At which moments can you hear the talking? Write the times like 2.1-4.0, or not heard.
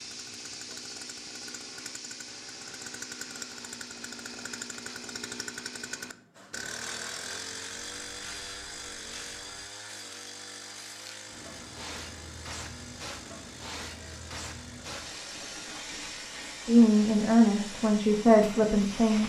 16.6-19.2.